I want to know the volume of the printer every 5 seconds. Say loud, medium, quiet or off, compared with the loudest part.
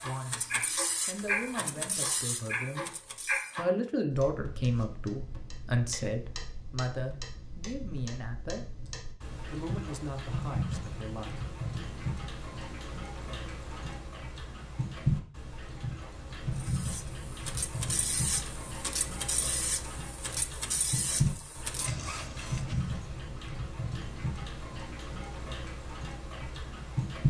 loud, off, off, loud, loud, off.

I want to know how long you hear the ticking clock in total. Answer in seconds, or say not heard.
27 s.